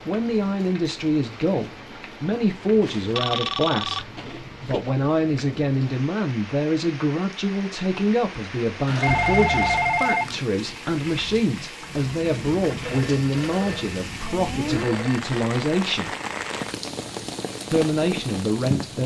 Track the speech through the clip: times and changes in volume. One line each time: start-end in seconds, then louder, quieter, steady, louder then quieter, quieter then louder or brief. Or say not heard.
0.1-16.1 steady
17.7-19.0 brief.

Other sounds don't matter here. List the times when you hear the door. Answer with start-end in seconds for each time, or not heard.
not heard.